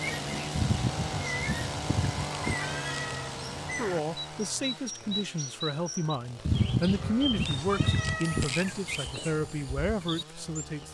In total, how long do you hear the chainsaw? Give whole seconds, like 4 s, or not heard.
11 s.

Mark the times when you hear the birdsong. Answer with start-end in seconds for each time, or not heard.
0.0-10.9.